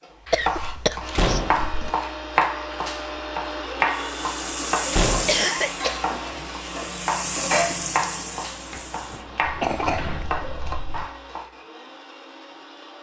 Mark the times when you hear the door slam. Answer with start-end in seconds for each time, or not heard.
1.1-1.7, 4.9-5.5, 9.4-11.1.